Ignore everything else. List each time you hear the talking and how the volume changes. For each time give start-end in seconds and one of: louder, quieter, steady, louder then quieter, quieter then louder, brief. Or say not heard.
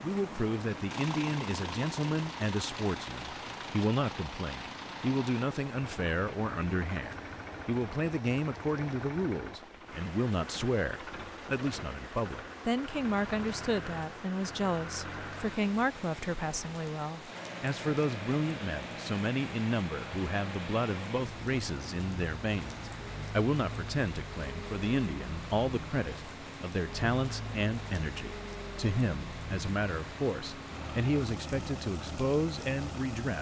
0.0-33.3 steady.